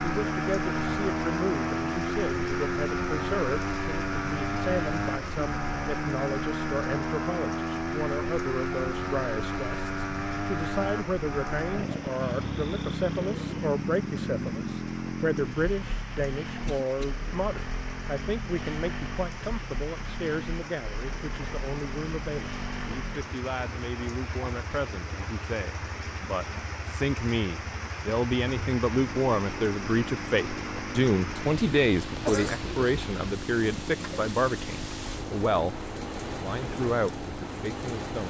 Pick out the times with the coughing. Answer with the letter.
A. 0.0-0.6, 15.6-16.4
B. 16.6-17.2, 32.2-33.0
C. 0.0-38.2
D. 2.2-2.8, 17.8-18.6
B.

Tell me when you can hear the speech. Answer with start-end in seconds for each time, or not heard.
0.0-38.2.